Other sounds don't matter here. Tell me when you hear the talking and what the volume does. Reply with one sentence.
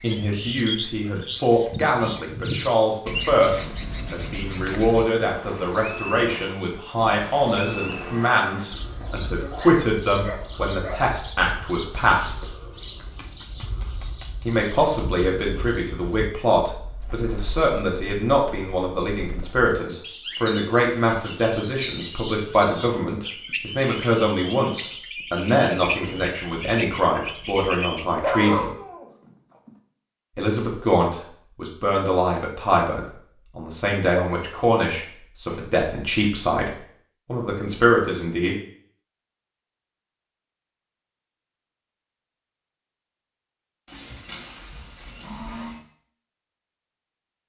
The talking can be heard from 0.0 to 12.6 s, at a steady volume; from 14.4 to 28.7 s, at a steady volume; and from 30.4 to 38.5 s, at a steady volume.